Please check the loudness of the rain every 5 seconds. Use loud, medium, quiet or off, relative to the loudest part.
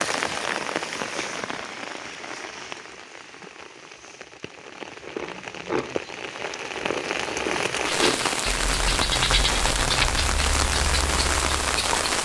medium, loud, loud.